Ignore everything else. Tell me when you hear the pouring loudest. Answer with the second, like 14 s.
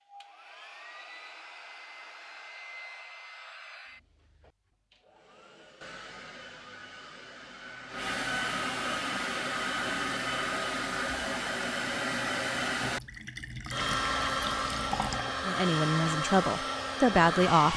15 s.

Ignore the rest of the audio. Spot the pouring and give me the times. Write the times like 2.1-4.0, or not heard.
12.8-15.4.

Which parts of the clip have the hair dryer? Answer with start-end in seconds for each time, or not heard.
0.0-17.7.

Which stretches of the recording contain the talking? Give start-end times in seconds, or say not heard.
15.4-17.7.